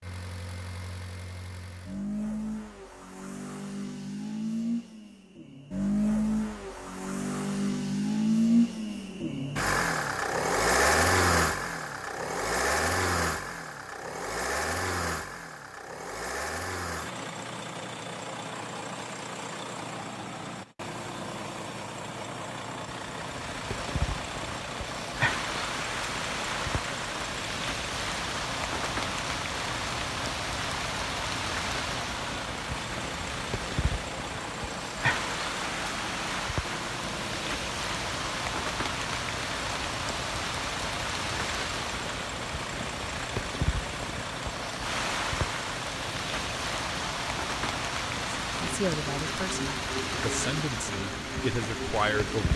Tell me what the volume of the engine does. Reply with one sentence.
The loudness of the engine goes down.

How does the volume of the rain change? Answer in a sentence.
The volume of the rain stays about the same.